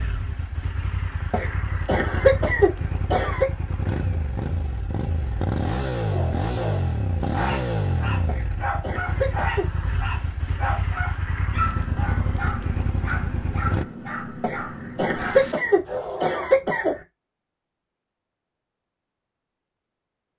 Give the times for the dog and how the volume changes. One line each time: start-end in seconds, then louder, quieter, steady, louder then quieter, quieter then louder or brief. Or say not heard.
6.1-16.5 steady.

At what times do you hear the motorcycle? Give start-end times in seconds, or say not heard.
0.0-13.8.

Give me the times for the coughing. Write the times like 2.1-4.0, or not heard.
1.3-3.5, 8.2-9.7, 14.4-17.0.